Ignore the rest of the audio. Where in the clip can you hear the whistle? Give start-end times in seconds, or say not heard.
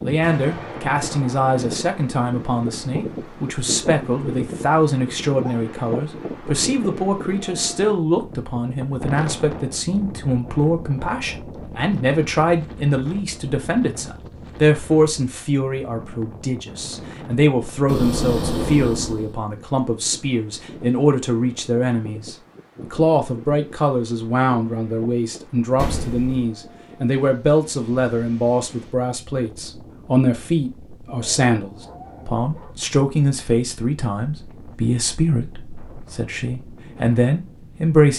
not heard.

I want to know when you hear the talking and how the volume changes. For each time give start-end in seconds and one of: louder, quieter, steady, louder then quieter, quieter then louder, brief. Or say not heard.
0.0-38.1 steady.